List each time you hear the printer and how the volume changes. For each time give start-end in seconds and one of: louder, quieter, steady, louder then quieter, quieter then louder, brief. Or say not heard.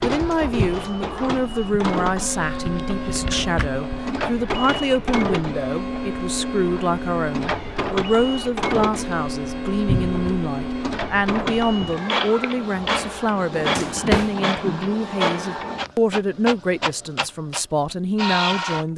0.0-18.9 steady.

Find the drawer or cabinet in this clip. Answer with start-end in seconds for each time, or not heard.
2.8-3.7, 9.8-10.3, 13.5-14.3.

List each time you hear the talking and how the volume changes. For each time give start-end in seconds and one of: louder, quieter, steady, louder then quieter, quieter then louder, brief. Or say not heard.
0.0-18.9 steady.